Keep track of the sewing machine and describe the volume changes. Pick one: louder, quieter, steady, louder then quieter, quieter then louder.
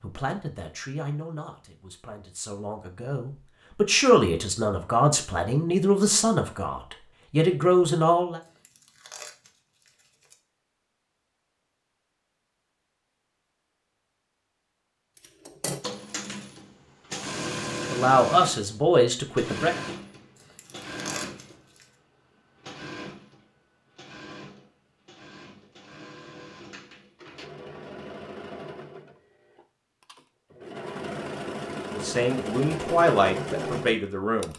quieter then louder.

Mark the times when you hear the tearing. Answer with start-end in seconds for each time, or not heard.
8.4-10.3, 20.4-21.9.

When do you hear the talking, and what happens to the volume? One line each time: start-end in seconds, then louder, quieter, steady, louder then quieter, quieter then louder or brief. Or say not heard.
0.0-8.4 louder
17.9-19.8 brief
31.9-34.5 brief.